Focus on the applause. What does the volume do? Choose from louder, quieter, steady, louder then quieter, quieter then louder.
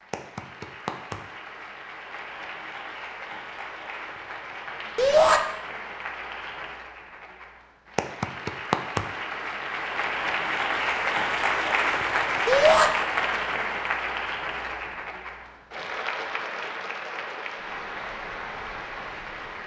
louder then quieter.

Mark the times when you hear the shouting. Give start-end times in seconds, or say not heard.
5.0-5.4, 12.4-12.9.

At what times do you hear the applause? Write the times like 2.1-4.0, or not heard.
0.0-19.6.